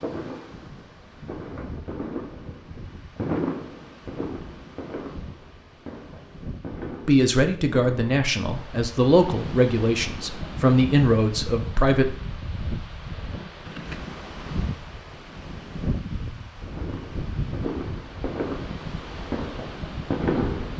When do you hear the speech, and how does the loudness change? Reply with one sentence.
You can hear the speech from 7.0 to 12.2 s, at a steady volume.